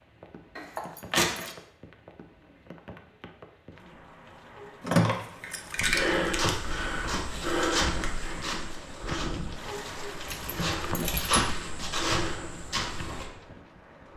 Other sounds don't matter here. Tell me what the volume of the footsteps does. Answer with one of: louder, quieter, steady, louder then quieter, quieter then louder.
quieter then louder.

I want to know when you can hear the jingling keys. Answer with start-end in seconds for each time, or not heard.
0.6-1.6, 4.8-6.6, 10.2-11.4.